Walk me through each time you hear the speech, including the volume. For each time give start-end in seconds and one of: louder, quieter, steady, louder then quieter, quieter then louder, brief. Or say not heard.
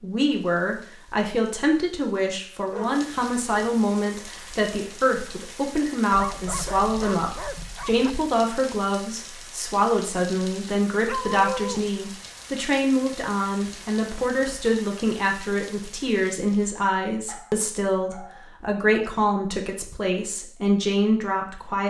0.0-21.8 steady.